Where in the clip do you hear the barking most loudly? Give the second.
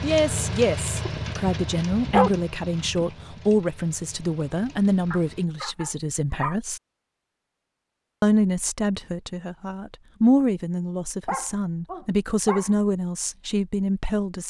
2 s.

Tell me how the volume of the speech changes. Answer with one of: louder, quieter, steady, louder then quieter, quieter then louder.
steady.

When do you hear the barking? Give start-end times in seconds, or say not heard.
1.1-3.1, 5.1-6.5, 11.2-12.8.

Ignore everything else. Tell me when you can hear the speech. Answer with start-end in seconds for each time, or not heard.
0.0-6.8, 8.2-14.4.